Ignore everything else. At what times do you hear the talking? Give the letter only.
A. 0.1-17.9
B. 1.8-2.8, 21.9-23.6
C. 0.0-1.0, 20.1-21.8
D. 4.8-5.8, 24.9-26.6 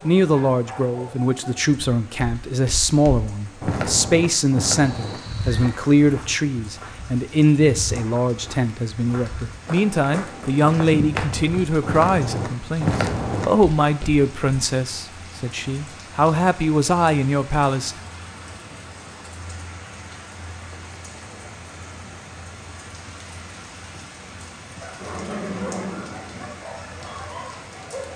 A.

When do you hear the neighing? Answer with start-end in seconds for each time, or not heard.
4.8-5.8, 24.9-26.6.